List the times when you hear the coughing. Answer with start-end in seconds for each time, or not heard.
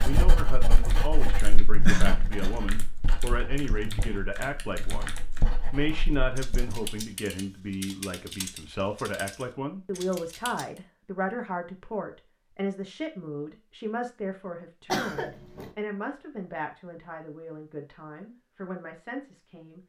1.9-2.5, 14.8-15.7.